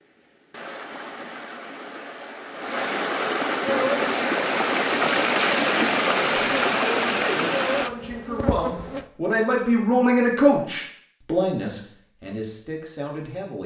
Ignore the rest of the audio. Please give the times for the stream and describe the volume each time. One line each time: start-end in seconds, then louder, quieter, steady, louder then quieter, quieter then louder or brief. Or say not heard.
0.0-7.9 louder.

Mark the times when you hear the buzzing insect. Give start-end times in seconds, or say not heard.
3.6-9.1.